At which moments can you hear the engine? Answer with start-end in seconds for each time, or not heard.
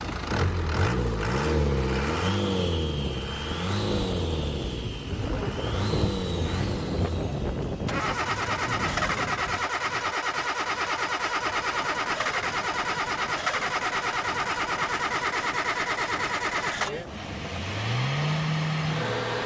0.0-19.4.